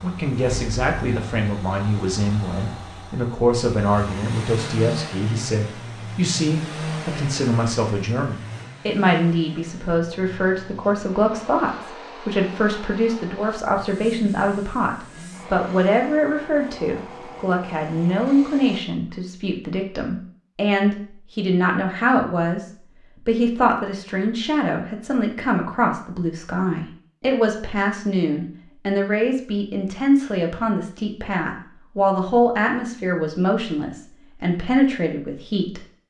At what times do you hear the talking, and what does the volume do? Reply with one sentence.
You can hear the talking from 0.0 to 22.6 s, at a steady volume; and from 23.2 to 35.9 s, at a steady volume.